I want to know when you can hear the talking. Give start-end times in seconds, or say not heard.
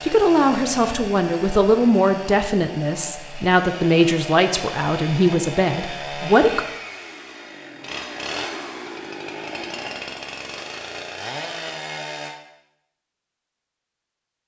0.0-6.7.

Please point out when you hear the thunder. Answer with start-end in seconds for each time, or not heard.
not heard.